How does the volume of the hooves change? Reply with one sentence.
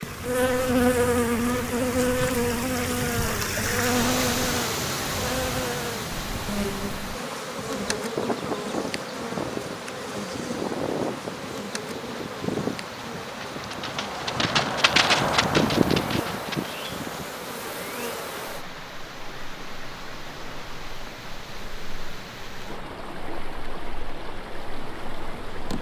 The loudness of the hooves goes up.